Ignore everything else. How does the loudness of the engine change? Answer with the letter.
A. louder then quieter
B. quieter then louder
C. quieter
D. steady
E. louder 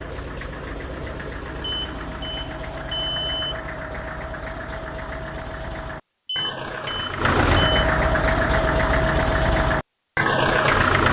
E.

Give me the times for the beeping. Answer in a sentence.
The beeping can be heard from 1.6 to 3.6 s and from 6.2 to 7.8 s.